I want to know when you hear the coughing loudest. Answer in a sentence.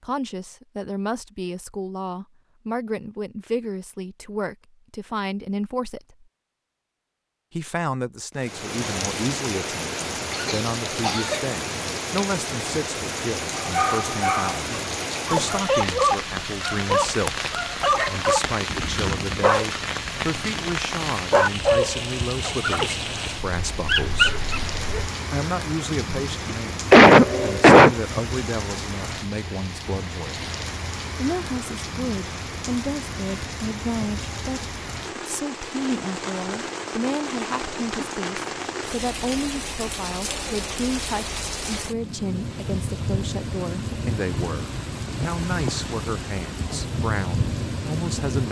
The volume of the coughing peaks at 27 seconds.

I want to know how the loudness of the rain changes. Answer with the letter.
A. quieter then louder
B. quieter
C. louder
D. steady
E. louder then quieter
D.